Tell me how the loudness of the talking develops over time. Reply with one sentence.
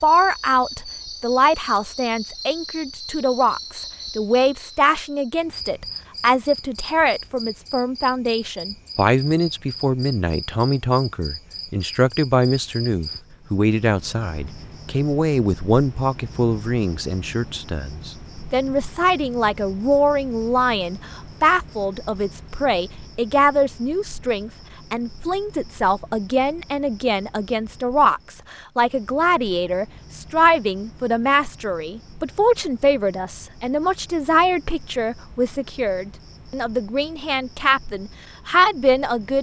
The loudness of the talking stays about the same.